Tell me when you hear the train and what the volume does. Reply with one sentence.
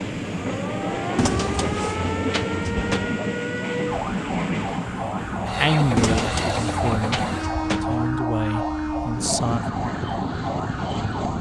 The train can be heard from 0.0 to 11.3 s, at a steady volume.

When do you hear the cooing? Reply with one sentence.
The cooing can be heard from 1.1 to 3.2 s and from 6.0 to 8.2 s.